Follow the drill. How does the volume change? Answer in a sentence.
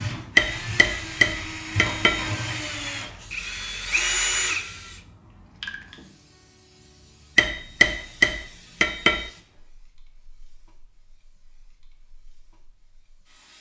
The volume of the drill goes up.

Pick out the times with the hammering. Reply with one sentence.
You can hear the hammering from 0.3 to 2.3 s and from 7.3 to 9.3 s.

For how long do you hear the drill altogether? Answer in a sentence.
You can hear the drill for 5 seconds altogether.